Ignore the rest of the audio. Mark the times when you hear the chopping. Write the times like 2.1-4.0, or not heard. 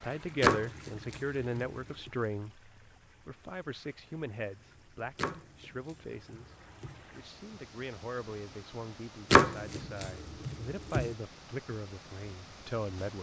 0.4-2.1, 5.2-7.0, 9.3-11.2.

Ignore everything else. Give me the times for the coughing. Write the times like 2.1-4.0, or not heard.
not heard.